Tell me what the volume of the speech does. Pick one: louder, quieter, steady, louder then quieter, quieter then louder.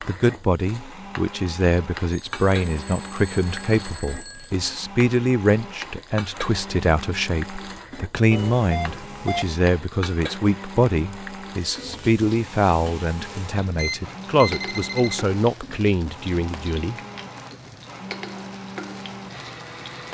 steady.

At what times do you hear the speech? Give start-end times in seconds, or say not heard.
0.0-16.9.